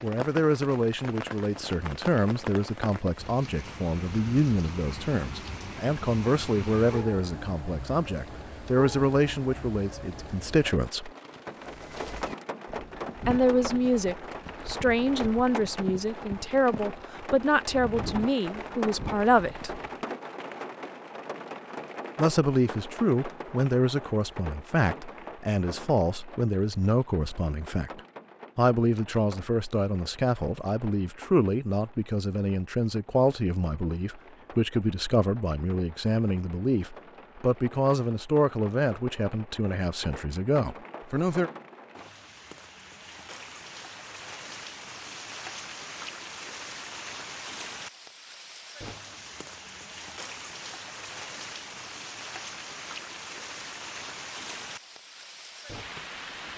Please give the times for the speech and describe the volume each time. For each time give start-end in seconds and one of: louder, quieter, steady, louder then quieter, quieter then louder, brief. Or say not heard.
0.0-11.1 steady
13.2-19.8 steady
22.1-41.5 steady.